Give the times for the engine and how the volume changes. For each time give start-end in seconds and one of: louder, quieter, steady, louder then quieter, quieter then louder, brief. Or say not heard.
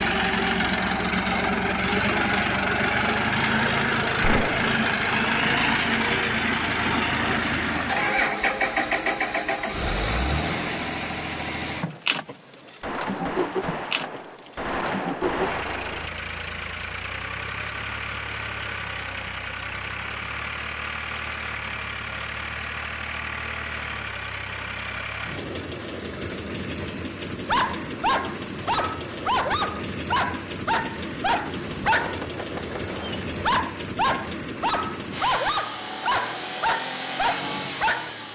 0.0-38.2 quieter.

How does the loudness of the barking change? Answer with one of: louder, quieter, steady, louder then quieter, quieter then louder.
steady.